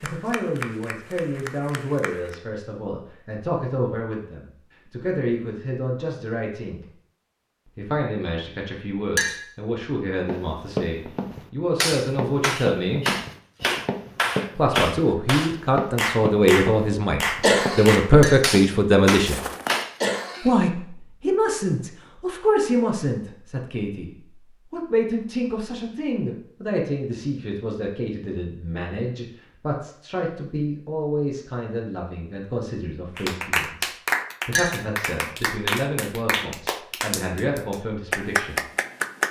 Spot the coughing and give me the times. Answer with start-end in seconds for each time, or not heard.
17.4-17.9, 20.0-20.7.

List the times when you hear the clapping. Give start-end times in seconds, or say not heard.
0.0-2.4, 11.8-19.9, 33.1-39.2.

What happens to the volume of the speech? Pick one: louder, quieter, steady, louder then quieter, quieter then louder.
louder then quieter.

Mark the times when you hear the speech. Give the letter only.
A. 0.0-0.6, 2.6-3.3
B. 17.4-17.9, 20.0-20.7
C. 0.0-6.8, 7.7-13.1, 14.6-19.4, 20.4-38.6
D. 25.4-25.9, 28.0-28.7
C.